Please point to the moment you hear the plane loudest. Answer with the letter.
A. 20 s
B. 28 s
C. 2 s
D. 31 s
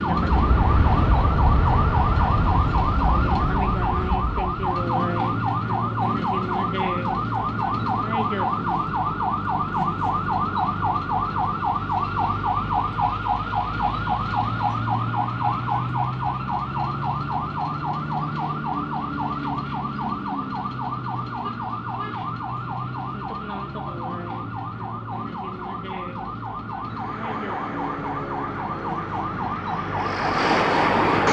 D.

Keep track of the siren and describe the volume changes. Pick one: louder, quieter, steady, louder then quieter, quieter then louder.
quieter.